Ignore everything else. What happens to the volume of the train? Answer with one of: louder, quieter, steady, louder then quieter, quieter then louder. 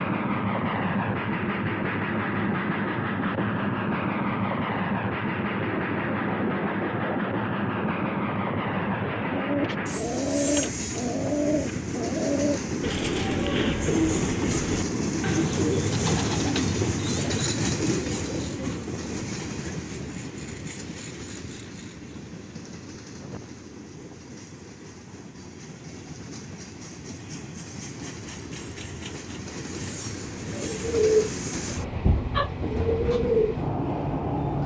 quieter then louder.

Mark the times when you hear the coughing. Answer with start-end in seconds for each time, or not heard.
not heard.